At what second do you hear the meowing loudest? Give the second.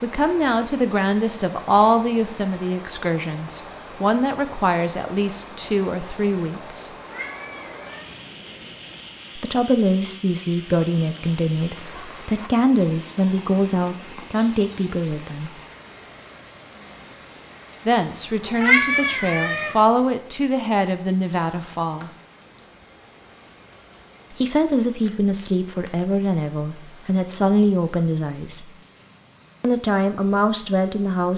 19 s.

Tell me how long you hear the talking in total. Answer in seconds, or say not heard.
23 s.